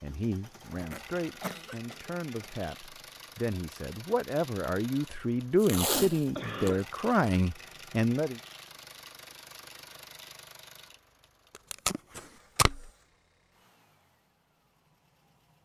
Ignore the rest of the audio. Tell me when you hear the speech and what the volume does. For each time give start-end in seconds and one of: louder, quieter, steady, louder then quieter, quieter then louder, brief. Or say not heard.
0.0-8.4 louder.